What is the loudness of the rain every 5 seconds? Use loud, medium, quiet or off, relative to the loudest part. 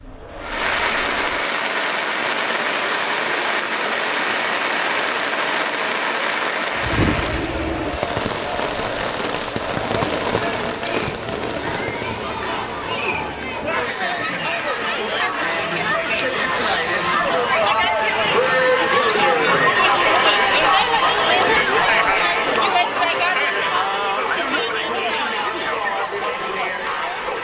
loud, loud, medium, quiet, off, off.